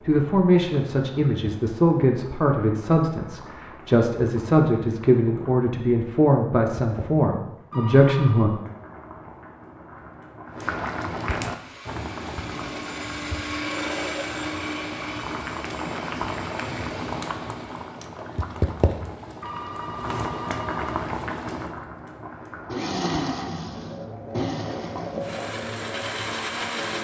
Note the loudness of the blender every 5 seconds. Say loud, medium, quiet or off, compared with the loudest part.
off, off, loud, medium, loud, loud.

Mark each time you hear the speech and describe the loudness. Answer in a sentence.
The speech can be heard from 0.0 to 8.5 s, at a steady volume.